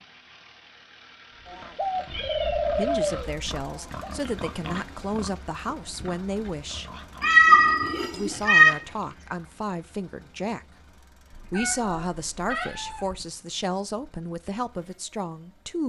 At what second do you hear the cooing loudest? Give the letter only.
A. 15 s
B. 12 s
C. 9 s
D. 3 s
D.